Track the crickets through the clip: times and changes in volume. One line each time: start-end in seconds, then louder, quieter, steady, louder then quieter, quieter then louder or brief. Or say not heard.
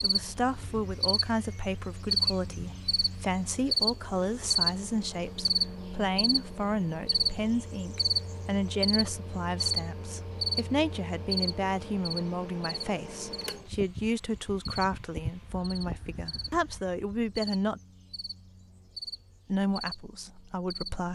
0.0-21.0 quieter.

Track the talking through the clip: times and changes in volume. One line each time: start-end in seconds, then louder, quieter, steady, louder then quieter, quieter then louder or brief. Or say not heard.
0.0-17.8 steady
19.4-21.0 brief.